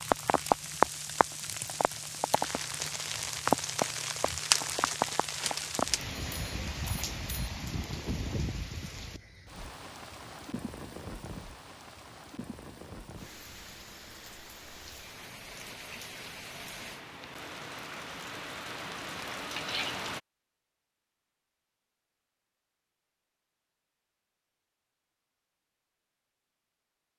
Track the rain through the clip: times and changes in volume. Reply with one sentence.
You can hear the rain from 0.0 to 20.2 s, getting quieter then louder.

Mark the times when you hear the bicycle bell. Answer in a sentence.
You can hear the bicycle bell from 6.2 to 7.5 s.